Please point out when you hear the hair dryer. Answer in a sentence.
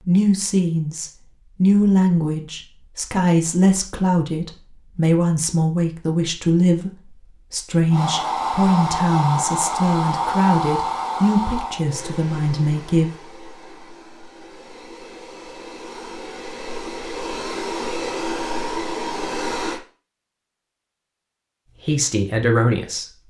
You can hear the hair dryer from 7.9 to 19.8 s.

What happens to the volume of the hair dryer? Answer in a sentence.
The loudness of the hair dryer goes down, then up.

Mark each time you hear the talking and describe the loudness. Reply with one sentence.
The talking can be heard from 0.0 to 13.2 s, at a steady volume; and briefly from 21.9 to 23.1 s.